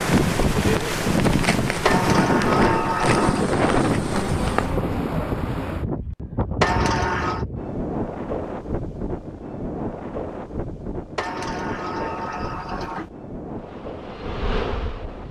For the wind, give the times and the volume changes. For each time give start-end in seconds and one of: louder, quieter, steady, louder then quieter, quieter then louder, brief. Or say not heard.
0.0-15.2 quieter.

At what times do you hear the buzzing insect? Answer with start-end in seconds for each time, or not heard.
0.0-4.8, 13.6-15.2.